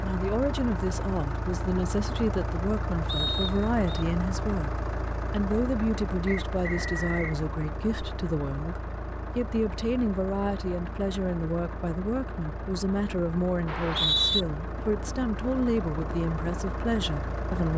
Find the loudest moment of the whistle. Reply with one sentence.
The volume of the whistle peaks at 14 seconds.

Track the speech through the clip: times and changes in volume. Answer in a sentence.
The speech can be heard from 0.0 to 17.7 s, at a steady volume.